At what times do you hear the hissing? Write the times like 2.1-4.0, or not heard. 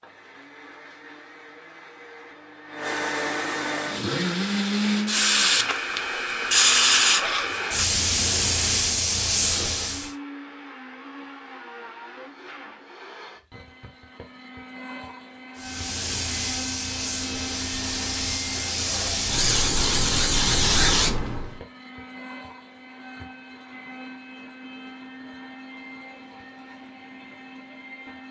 3.8-10.2, 15.6-21.5.